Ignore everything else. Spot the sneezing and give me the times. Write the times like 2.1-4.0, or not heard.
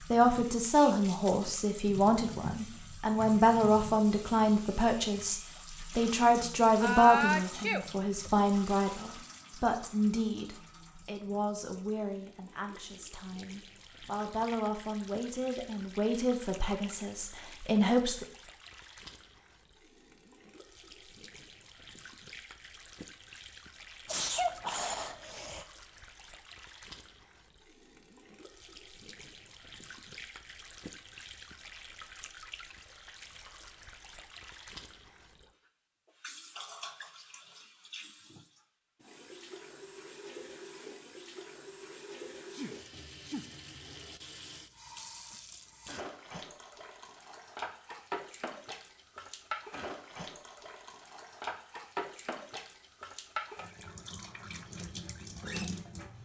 6.8-8.4, 24.1-25.6, 42.5-43.5.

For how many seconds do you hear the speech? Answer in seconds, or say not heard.
18 s.